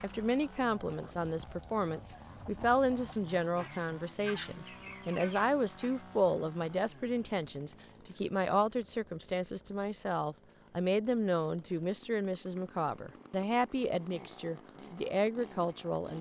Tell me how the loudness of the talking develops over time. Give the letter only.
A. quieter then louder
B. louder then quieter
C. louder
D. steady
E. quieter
D.